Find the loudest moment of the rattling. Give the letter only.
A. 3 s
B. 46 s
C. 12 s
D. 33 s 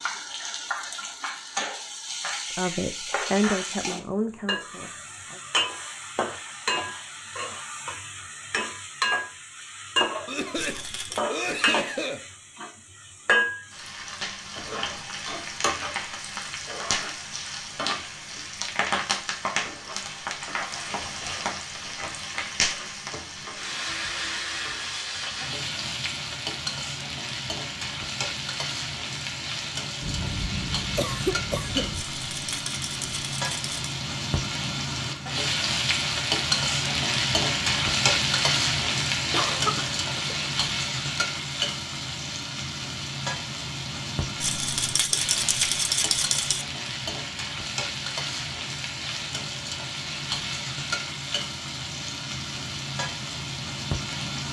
B.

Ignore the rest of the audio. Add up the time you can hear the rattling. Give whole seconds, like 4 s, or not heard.
5 s.